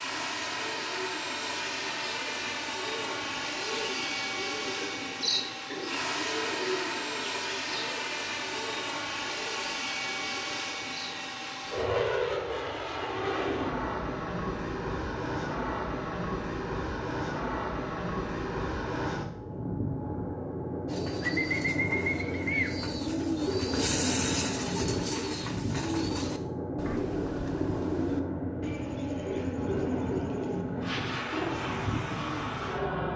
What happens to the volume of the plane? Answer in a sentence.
The volume of the plane stays about the same.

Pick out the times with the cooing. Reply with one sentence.
You can hear the cooing from 0.1 to 11.9 s and from 20.9 to 32.6 s.